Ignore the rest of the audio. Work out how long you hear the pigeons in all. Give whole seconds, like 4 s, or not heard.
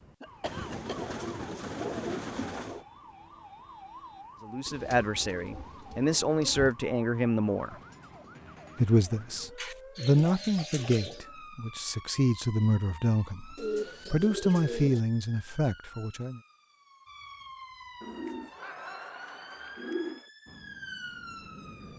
10 s.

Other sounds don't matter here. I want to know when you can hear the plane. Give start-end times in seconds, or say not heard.
20.4-21.9.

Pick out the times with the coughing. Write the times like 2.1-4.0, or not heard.
0.2-1.1.